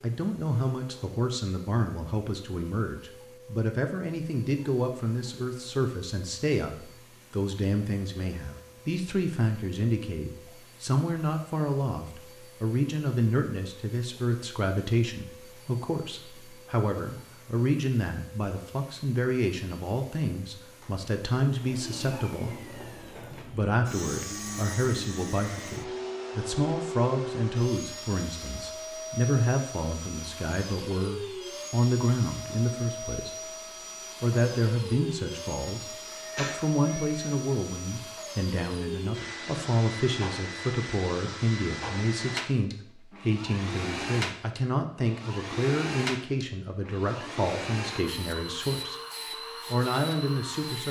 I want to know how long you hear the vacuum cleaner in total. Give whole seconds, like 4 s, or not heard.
51 s.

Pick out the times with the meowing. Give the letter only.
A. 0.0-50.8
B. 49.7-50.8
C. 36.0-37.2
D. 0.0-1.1
C.